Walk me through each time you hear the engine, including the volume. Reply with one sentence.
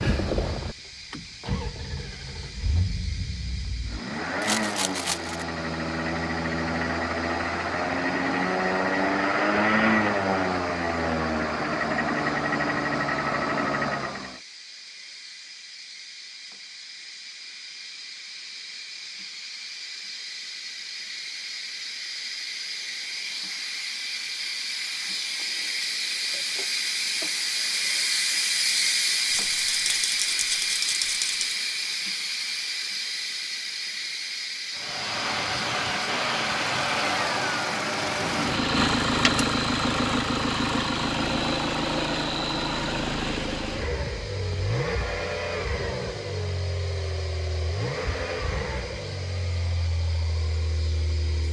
The engine can be heard from 0.0 to 14.4 s, getting louder; and from 34.7 to 51.4 s, getting quieter.